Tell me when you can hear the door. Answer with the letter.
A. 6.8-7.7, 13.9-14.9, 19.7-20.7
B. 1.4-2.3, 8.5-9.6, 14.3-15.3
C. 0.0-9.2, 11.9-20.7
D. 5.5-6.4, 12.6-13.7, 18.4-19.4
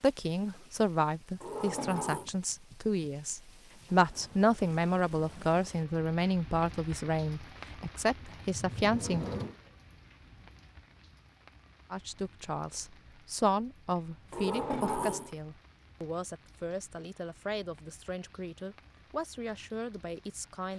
B.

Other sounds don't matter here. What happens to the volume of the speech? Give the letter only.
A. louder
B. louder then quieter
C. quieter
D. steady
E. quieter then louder
C.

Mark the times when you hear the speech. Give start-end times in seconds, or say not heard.
0.0-9.2, 11.9-20.7.